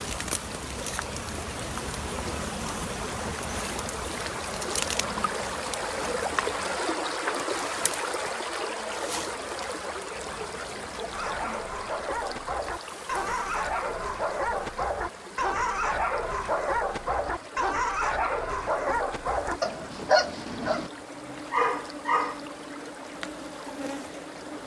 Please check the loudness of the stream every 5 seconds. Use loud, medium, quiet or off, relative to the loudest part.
medium, loud, medium, quiet, quiet.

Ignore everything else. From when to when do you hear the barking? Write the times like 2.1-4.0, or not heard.
11.1-22.4.